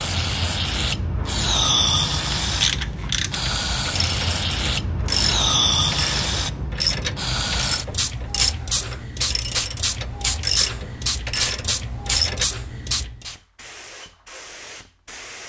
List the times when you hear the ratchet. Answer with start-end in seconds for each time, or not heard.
2.4-12.4.